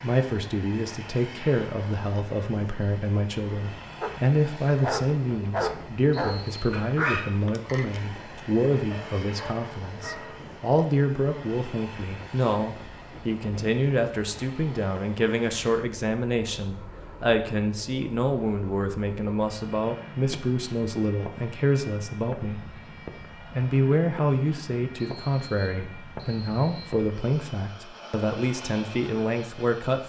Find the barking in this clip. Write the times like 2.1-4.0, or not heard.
4.0-10.7.